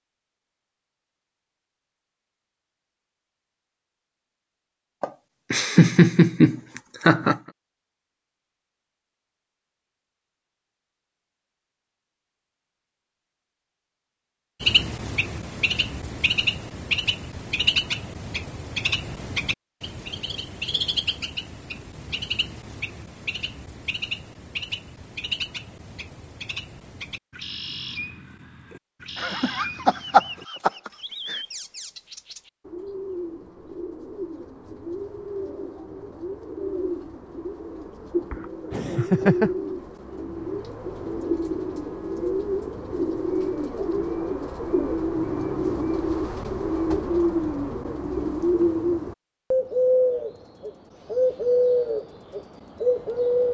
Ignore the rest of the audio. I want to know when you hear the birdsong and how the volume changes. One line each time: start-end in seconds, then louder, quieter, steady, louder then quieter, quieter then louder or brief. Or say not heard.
14.6-53.4 quieter then louder.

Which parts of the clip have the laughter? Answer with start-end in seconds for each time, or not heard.
5.0-7.4, 29.1-31.4, 38.3-39.5.